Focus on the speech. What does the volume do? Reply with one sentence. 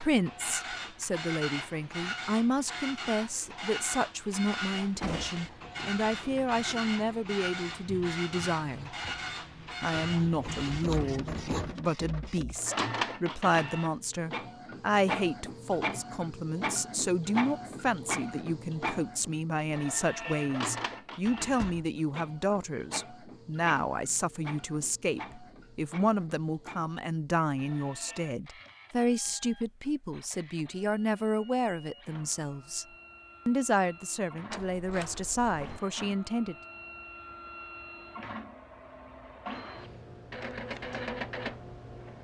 The loudness of the speech stays about the same.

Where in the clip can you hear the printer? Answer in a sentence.
The printer can be heard from 0.0 to 42.1 s.